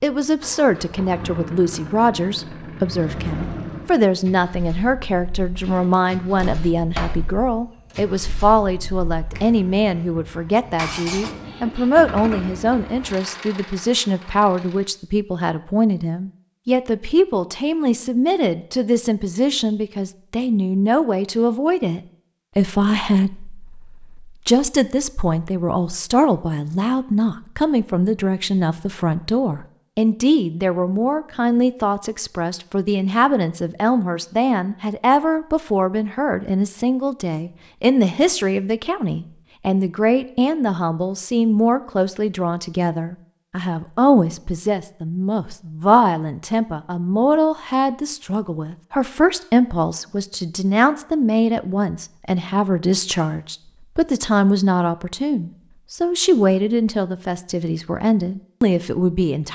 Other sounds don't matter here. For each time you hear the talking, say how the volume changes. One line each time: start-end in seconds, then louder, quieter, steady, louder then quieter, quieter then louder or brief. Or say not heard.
0.0-59.5 steady.